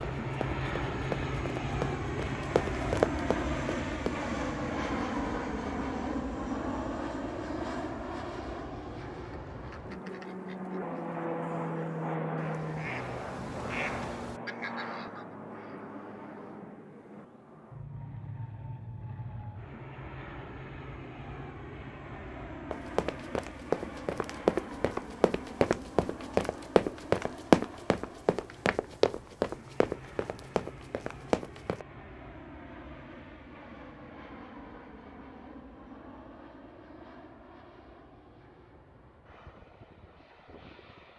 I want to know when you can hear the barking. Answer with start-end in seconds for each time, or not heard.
not heard.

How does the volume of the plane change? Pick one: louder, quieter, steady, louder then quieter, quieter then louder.
quieter.